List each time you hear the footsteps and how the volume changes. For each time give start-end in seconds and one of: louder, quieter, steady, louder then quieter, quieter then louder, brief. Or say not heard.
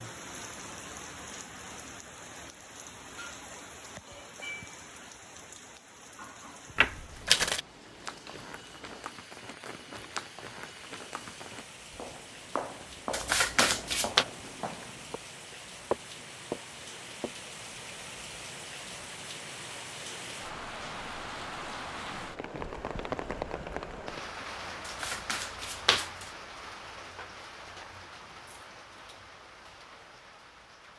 7.8-17.4 louder.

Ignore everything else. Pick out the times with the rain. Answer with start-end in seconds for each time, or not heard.
0.0-30.9.